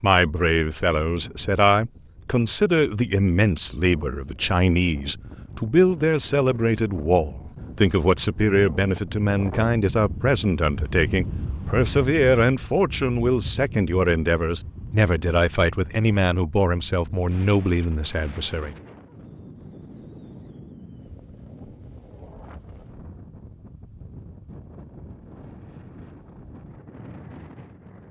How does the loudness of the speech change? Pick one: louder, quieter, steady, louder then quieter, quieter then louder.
steady.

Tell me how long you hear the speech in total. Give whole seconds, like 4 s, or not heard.
19 s.